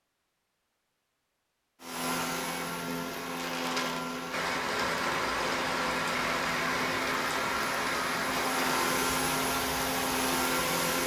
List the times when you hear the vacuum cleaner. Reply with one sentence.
The vacuum cleaner can be heard from 1.8 to 11.0 s.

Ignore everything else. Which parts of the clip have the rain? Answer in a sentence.
The rain can be heard from 3.2 to 11.0 s.